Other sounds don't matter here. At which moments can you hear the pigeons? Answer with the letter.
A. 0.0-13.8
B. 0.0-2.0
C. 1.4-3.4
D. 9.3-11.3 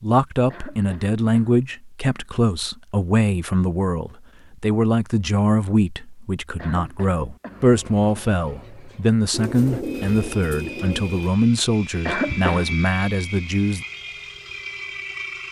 D.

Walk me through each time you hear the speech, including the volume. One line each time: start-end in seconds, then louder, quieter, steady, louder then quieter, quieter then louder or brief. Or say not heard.
0.0-13.8 steady.